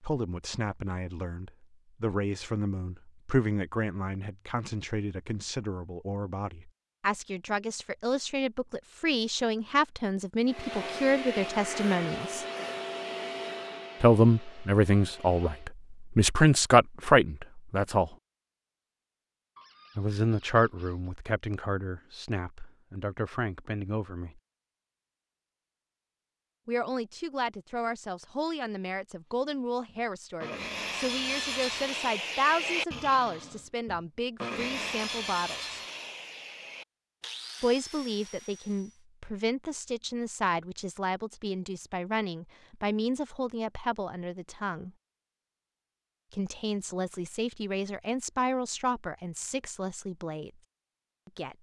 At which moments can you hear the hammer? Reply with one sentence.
You can't hear the hammer here.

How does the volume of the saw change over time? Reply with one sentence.
The volume of the saw goes down.